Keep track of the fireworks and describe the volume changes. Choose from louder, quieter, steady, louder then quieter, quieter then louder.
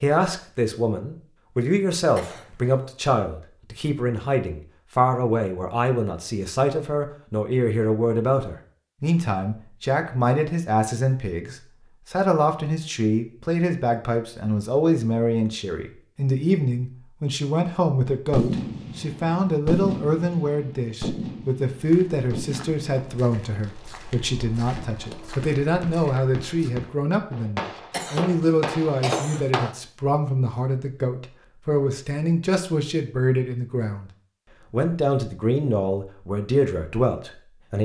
quieter then louder.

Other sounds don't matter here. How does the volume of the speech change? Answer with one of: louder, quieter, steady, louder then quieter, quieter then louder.
steady.